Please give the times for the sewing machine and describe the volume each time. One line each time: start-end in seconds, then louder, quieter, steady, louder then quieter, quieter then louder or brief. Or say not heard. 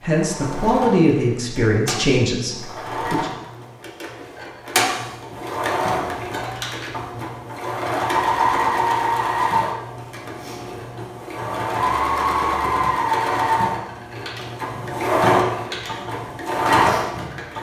0.0-17.5 louder.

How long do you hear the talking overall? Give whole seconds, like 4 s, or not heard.
3 s.